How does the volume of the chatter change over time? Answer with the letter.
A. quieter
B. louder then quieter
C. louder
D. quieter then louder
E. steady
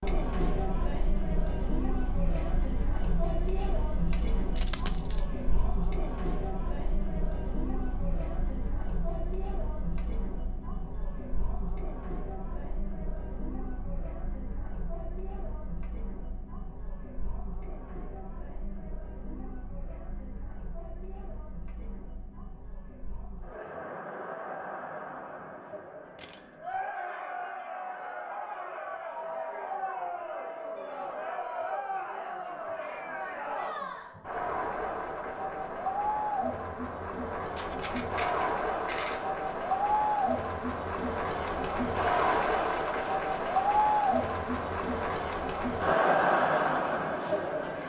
D.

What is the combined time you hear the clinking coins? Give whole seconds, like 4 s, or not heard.
3 s.